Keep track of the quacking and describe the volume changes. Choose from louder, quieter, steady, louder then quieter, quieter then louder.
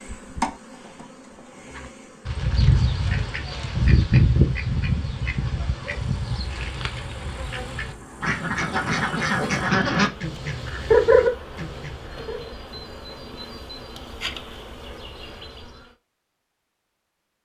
quieter then louder.